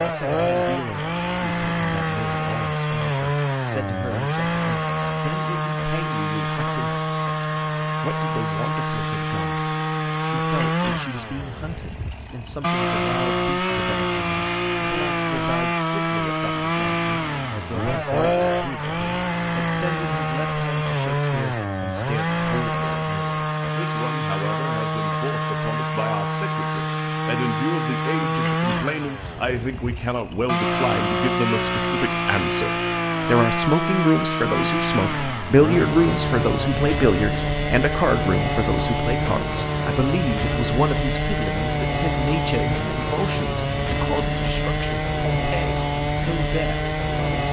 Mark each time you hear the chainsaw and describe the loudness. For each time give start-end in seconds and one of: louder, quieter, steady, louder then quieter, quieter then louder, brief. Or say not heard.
0.0-47.4 steady.